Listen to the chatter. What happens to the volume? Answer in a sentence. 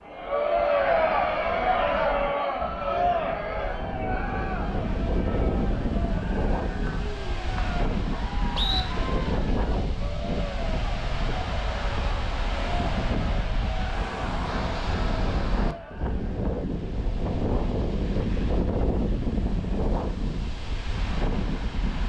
The loudness of the chatter goes down.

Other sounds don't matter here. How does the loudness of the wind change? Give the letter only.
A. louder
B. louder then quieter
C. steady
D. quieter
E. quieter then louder
A.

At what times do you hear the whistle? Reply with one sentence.
The whistle can be heard from 6.8 to 8.8 s.